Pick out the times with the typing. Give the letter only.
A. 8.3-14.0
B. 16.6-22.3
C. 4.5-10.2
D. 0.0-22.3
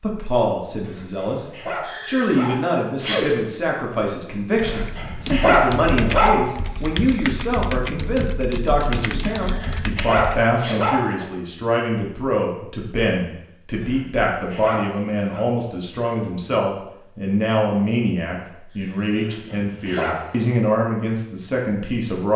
C.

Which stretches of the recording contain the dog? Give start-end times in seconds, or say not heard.
0.8-2.8, 4.6-6.4, 9.4-11.2, 13.8-15.4, 19.1-20.5.